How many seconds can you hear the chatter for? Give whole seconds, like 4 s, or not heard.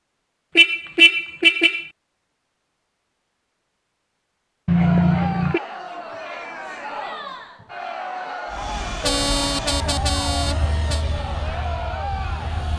8 s.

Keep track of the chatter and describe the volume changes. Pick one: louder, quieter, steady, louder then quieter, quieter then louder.
steady.